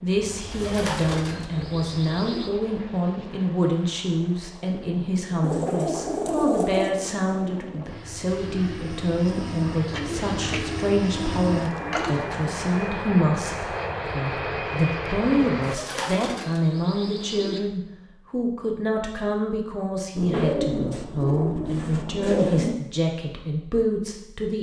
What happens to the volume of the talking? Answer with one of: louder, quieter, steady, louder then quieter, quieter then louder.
steady.